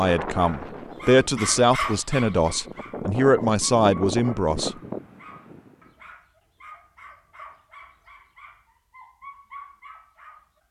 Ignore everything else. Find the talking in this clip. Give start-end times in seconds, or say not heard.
0.0-4.7.